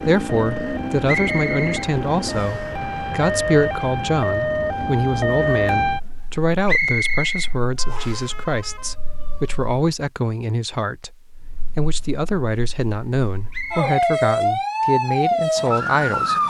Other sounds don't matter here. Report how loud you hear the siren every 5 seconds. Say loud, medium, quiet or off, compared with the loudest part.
medium, medium, loud, loud.